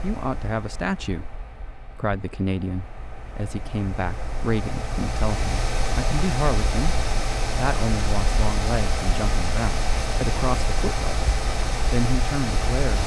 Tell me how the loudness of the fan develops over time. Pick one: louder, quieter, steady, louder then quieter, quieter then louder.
louder.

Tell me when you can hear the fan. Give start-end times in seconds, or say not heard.
0.0-13.0.